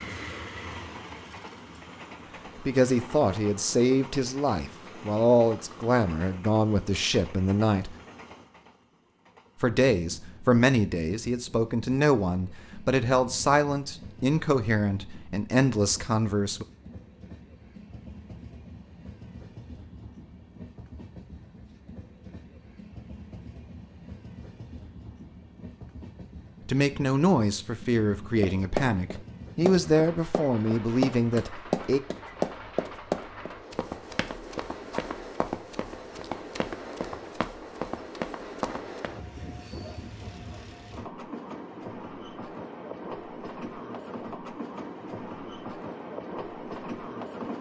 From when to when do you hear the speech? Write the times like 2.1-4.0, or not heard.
2.6-8.0, 9.6-16.6, 26.6-32.0.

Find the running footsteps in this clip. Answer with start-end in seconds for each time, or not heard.
28.4-39.1.